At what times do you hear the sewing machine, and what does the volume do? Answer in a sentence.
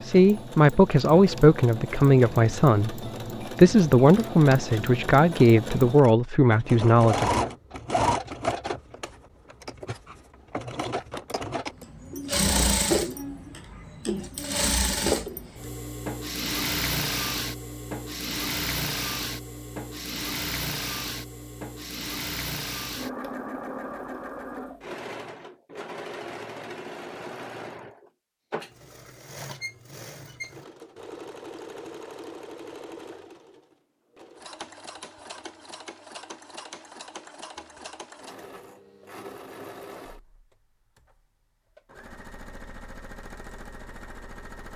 The sewing machine can be heard from 0.0 to 44.7 s, getting quieter.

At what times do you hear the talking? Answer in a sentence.
You can hear the talking from 0.0 to 7.5 s.